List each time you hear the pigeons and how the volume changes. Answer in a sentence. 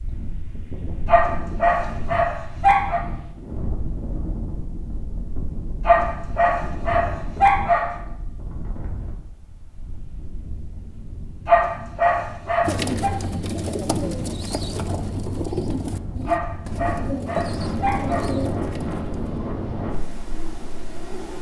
You can hear the pigeons from 12.6 to 19.4 s, at a steady volume.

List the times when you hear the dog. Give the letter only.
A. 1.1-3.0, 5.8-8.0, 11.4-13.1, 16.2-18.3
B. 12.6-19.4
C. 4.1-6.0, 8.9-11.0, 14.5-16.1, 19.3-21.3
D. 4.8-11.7
A.